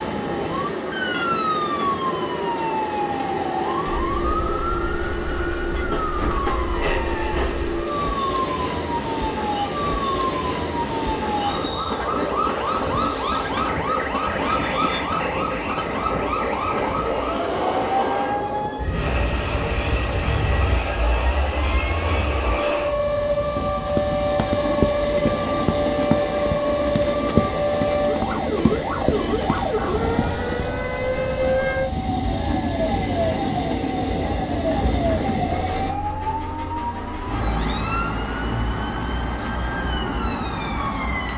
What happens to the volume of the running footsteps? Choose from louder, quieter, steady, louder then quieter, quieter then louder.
quieter.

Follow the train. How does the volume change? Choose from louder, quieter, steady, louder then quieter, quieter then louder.
steady.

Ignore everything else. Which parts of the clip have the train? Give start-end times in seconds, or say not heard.
0.0-36.0.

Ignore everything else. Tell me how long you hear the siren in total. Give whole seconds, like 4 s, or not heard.
41 s.